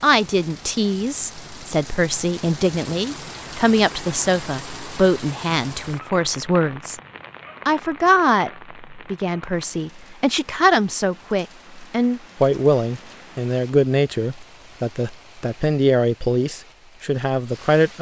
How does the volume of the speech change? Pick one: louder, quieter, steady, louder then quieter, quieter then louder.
steady.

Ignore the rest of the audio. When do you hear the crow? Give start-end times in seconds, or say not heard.
not heard.